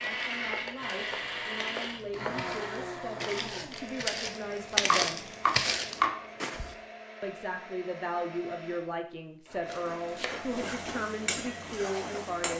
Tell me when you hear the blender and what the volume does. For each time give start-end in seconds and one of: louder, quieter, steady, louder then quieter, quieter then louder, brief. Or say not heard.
0.0-12.5 quieter.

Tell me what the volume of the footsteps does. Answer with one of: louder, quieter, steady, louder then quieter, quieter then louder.
louder.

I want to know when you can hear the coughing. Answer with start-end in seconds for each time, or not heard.
not heard.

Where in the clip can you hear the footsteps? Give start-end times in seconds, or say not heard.
0.0-6.6.